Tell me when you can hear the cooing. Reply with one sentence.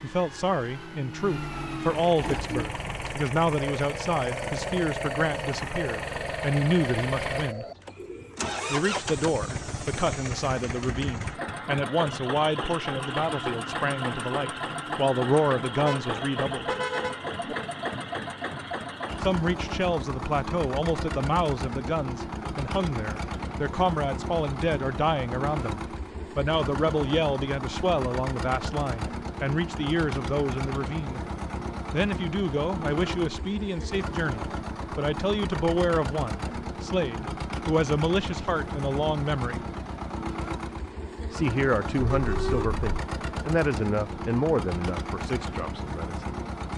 You can hear the cooing from 2.1 to 8.4 s.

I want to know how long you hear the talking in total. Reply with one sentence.
The talking can be heard for 40 seconds in total.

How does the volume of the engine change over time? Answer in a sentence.
The loudness of the engine stays about the same.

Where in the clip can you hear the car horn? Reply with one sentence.
The car horn can be heard from 15.8 to 17.6 s and from 42.0 to 42.8 s.